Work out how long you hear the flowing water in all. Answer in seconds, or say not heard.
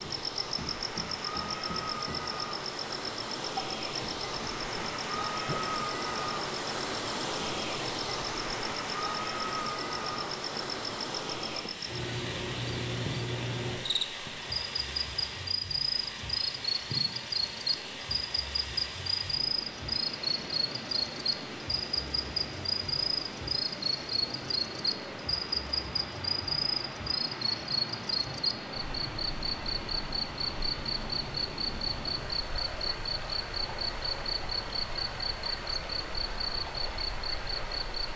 38 s.